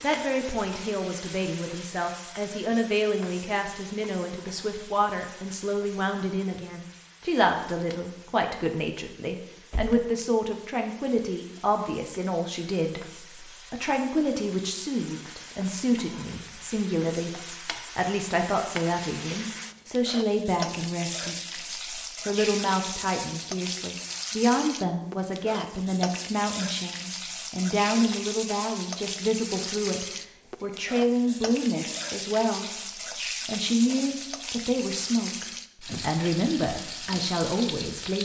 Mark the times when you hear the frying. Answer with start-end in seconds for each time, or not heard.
0.0-38.1.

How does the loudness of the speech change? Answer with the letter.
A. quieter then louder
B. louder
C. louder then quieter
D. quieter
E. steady
E.